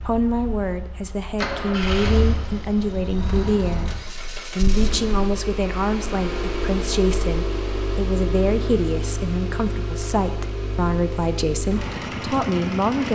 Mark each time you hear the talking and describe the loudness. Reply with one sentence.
You can hear the talking from 0.0 to 13.0 s, at a steady volume.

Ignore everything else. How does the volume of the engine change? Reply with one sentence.
The volume of the engine stays about the same.